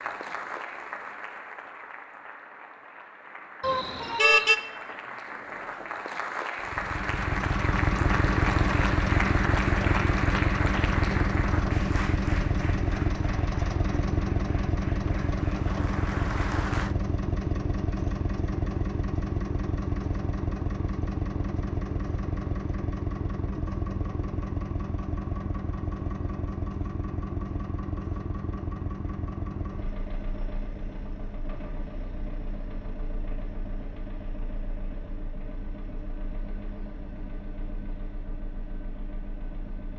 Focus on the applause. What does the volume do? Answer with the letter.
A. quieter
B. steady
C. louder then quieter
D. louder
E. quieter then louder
C.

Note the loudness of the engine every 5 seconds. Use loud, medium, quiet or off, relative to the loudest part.
off, loud, loud, loud, medium, medium, quiet, quiet.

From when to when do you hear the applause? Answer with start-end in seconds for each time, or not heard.
0.0-16.9.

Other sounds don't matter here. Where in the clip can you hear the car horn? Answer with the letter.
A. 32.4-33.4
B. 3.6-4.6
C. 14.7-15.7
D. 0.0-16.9
B.